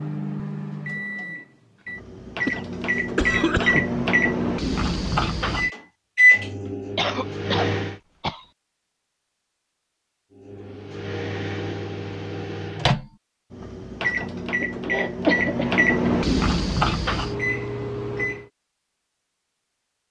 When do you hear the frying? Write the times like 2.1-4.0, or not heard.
not heard.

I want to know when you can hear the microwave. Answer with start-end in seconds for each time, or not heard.
0.0-8.0, 10.3-18.5.